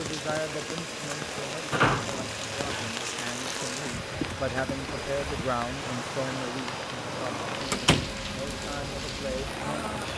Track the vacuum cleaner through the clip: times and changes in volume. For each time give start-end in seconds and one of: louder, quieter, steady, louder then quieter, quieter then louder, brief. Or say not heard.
0.0-10.1 steady.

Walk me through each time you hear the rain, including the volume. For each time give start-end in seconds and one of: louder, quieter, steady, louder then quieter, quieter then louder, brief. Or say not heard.
0.0-10.1 steady.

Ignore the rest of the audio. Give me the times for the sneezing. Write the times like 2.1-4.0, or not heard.
not heard.